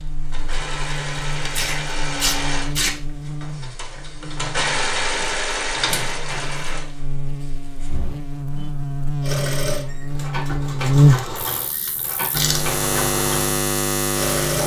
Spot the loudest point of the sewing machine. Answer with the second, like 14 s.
5 s.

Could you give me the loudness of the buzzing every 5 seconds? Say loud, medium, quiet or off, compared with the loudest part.
quiet, medium, loud.